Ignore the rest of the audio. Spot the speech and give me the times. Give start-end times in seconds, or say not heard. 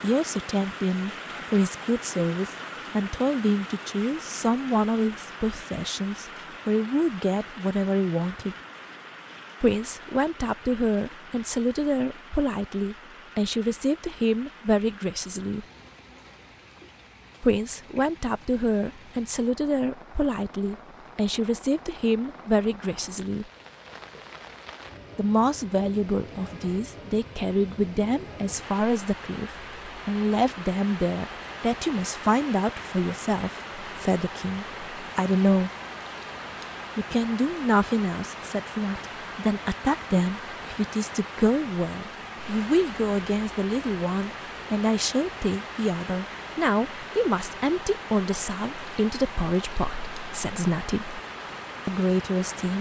0.0-8.6, 9.6-15.7, 17.4-23.4, 25.1-35.7, 37.0-51.2, 51.9-52.7.